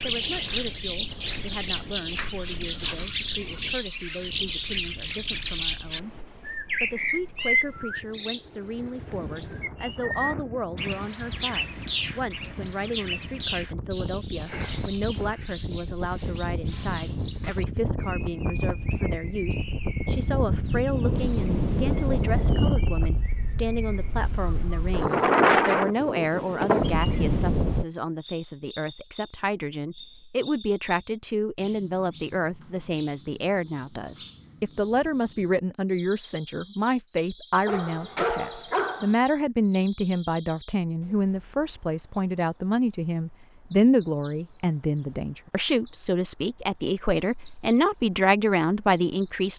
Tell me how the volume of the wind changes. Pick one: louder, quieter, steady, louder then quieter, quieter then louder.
louder.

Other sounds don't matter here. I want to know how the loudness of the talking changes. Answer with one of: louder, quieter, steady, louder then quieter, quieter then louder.
louder.